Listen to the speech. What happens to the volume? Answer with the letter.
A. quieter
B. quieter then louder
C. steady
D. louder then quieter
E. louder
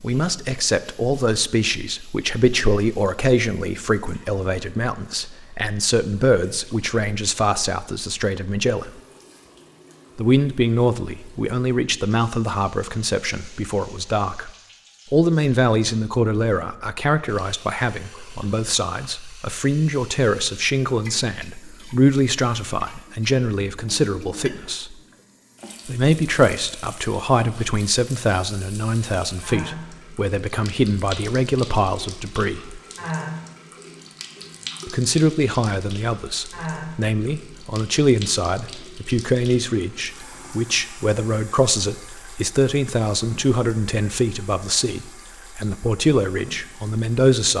C.